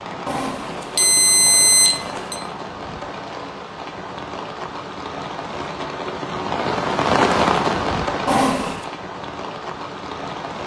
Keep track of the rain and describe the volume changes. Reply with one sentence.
The loudness of the rain goes up, then down.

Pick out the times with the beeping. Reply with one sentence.
You can hear the beeping from 0.2 to 2.4 s and from 8.2 to 8.8 s.